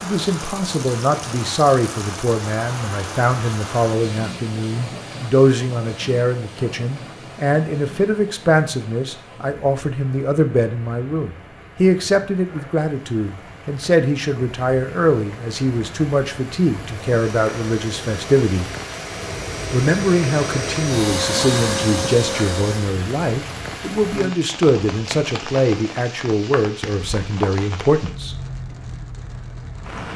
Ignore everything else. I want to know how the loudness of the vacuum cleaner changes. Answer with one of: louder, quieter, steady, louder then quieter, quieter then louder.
louder.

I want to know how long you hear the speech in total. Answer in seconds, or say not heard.
27 s.